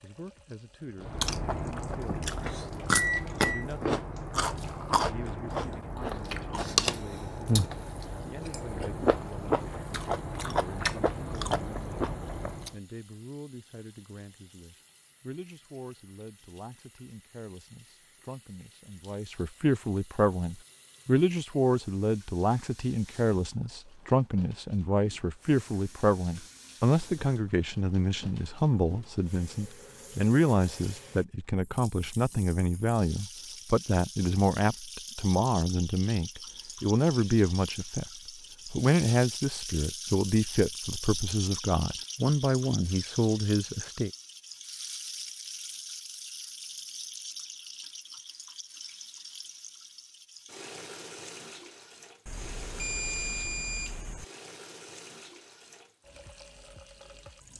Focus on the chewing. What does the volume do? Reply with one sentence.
The volume of the chewing stays about the same.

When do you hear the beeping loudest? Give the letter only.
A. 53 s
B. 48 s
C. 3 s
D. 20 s
C.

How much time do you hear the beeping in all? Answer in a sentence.
The beeping can be heard for 3 seconds in total.